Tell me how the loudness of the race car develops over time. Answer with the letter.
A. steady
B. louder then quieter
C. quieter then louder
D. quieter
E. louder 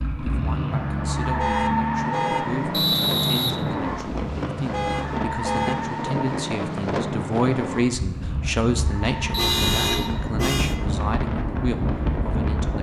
D.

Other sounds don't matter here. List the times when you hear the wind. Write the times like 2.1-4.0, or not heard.
2.0-12.7.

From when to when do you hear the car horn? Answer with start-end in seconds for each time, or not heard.
1.4-2.5, 4.7-5.8, 9.0-10.8.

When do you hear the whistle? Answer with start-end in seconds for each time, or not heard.
2.7-4.2, 9.3-10.1.